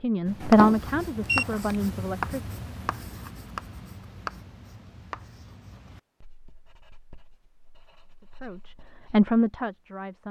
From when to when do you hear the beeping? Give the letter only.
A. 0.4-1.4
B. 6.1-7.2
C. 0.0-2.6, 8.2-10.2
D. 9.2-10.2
A.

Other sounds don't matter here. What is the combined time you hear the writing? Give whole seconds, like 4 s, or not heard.
9 s.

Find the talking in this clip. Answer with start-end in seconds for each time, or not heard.
0.0-2.6, 8.2-10.2.